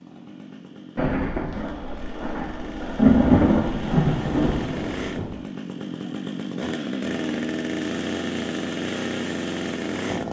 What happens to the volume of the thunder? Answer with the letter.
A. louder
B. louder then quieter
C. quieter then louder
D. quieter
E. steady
B.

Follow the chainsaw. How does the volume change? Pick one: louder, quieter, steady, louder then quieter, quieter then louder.
louder.